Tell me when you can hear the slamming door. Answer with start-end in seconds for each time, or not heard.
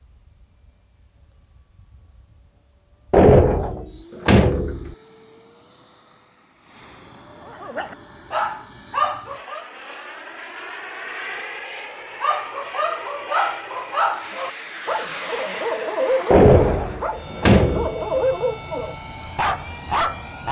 3.1-5.0, 16.3-17.9.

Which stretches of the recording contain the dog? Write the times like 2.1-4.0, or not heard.
7.5-9.7, 12.2-20.4.